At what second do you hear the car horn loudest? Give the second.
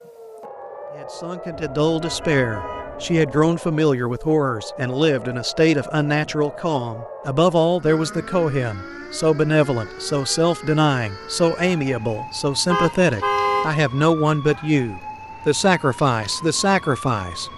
13 s.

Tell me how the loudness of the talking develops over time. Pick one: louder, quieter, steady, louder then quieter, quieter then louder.
steady.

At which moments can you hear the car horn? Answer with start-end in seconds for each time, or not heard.
1.5-3.5, 12.7-13.7.